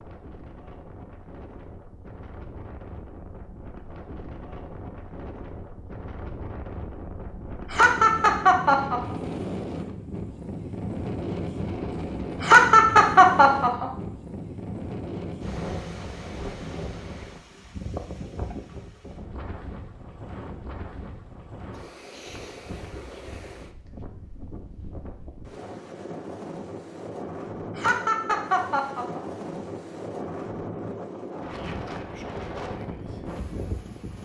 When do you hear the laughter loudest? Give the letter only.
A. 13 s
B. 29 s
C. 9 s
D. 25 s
A.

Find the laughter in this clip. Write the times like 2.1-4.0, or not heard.
7.7-9.2, 12.4-13.9, 27.8-29.2.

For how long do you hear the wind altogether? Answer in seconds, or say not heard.
34 s.